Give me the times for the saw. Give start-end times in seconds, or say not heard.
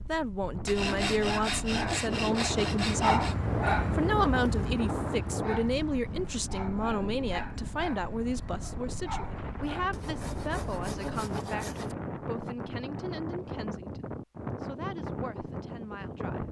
0.7-3.4, 9.9-11.9.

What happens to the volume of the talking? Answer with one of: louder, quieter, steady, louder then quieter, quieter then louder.
quieter.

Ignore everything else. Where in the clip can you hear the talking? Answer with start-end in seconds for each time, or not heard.
0.0-3.3, 3.9-16.4.